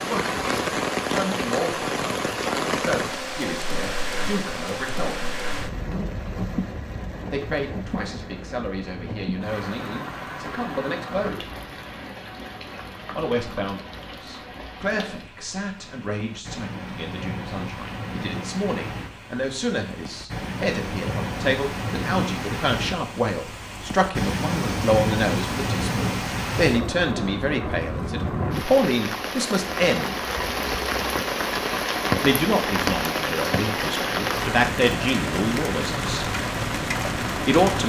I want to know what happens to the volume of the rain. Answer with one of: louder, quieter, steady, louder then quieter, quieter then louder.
quieter then louder.